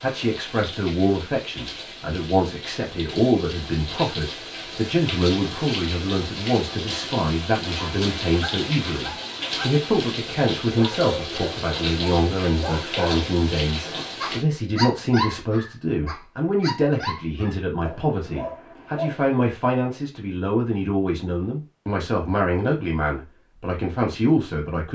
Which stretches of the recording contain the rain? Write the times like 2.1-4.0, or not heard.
0.0-14.4.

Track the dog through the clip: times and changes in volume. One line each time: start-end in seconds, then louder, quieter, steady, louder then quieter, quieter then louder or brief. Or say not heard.
7.8-9.8 brief
10.8-19.2 louder then quieter.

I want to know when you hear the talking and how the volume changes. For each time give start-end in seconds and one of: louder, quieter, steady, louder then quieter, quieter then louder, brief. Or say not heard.
0.0-24.9 steady.